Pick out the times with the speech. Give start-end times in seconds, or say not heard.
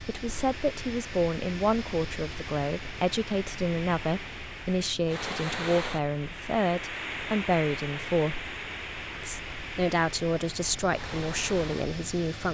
0.1-8.4, 9.2-12.4.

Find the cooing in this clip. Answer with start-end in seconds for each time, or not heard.
not heard.